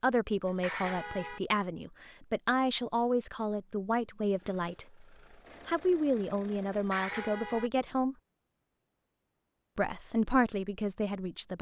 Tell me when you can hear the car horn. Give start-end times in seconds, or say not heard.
0.5-1.4, 6.7-7.7.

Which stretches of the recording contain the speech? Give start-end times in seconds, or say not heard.
0.0-5.0, 5.7-8.2, 9.8-11.5.